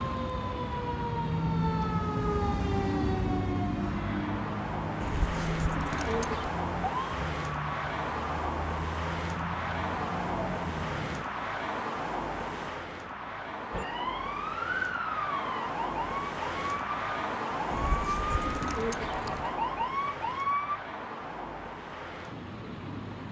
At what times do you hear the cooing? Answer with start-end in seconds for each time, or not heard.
5.0-6.5, 17.7-19.6.